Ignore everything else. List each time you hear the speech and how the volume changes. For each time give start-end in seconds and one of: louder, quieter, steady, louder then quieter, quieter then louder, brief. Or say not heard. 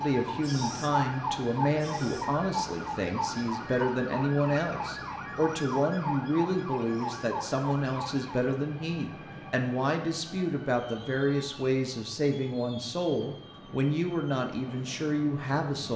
0.0-15.9 steady.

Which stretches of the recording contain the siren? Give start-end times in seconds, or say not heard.
0.0-8.5.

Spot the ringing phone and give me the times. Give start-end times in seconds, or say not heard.
not heard.